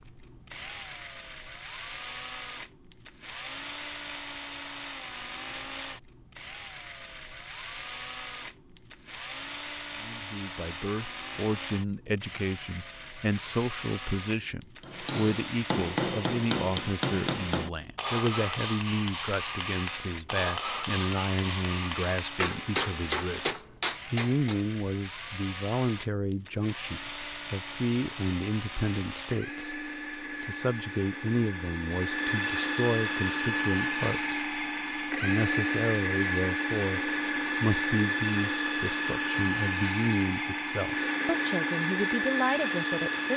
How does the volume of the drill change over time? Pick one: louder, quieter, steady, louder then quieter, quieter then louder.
louder.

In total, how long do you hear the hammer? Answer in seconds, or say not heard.
10 s.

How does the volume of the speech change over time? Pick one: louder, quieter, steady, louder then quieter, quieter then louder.
steady.